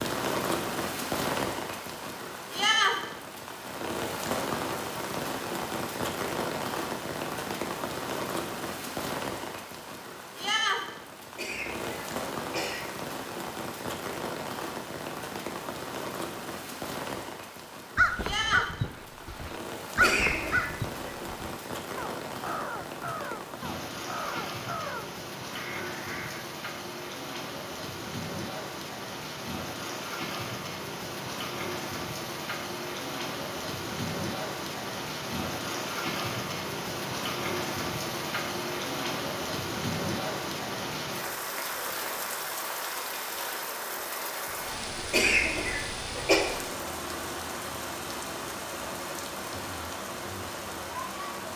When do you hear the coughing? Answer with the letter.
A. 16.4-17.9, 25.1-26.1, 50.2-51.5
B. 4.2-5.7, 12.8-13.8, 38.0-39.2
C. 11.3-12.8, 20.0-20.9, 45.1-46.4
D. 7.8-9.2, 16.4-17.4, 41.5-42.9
C.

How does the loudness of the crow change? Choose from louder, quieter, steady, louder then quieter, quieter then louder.
quieter.